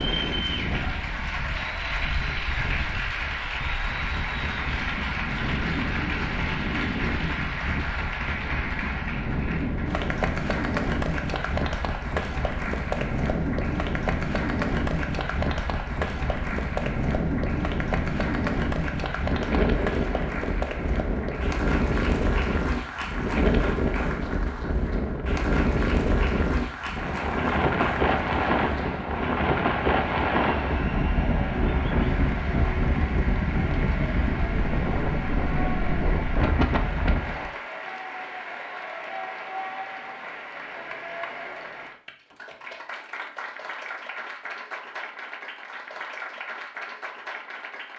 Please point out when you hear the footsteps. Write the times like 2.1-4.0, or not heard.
not heard.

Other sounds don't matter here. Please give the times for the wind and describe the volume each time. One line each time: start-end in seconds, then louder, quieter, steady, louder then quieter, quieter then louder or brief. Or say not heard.
0.0-37.5 louder.